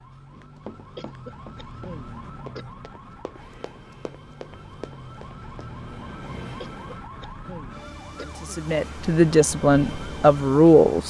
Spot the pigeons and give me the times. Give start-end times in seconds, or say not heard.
not heard.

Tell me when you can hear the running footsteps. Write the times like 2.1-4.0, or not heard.
0.3-5.7.